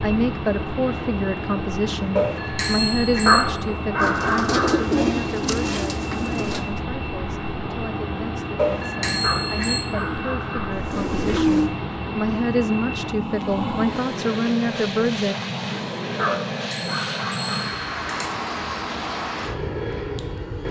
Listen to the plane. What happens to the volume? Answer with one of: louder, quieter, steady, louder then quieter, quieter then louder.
steady.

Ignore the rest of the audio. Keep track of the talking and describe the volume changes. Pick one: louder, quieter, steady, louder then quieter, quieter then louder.
quieter then louder.